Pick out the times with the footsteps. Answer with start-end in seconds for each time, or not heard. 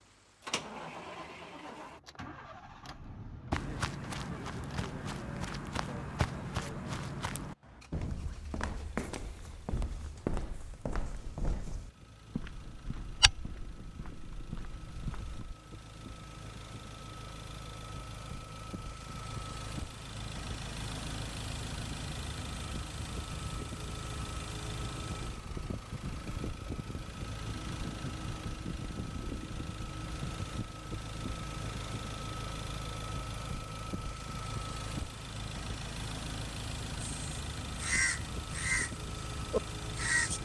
3.5-15.6.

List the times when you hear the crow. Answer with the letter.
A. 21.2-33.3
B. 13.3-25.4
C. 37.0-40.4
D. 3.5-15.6
C.